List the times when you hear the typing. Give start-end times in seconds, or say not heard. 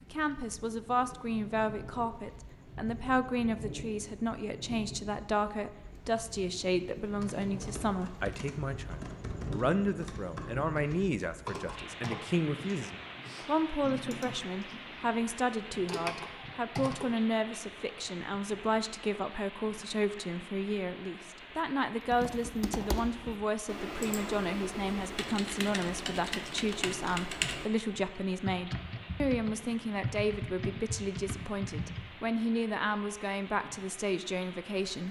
7.0-17.1, 22.1-32.1.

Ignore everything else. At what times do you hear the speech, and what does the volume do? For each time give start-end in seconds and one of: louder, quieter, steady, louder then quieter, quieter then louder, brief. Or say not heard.
0.1-35.0 steady.